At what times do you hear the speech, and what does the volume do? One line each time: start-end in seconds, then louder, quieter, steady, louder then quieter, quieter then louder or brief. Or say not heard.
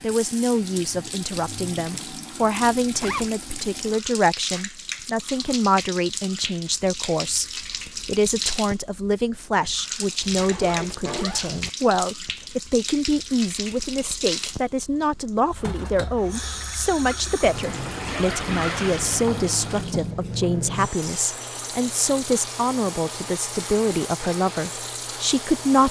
0.0-25.8 steady.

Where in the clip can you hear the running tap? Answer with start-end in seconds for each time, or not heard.
0.0-25.8.